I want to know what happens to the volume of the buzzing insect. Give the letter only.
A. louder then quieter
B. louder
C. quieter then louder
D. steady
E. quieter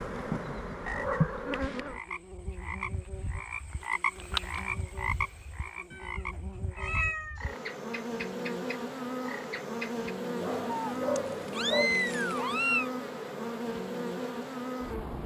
C.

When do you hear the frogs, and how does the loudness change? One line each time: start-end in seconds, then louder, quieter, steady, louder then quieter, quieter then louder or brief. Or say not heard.
0.0-10.2 louder then quieter.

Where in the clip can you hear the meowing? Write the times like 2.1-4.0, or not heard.
0.9-1.6, 5.9-7.4, 10.7-12.9.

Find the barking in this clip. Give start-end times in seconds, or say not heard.
10.3-11.9.